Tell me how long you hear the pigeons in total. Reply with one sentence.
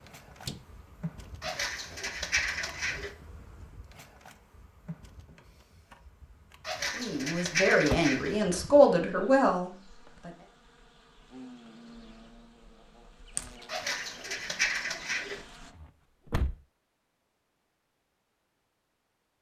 You can hear the pigeons for 5 seconds altogether.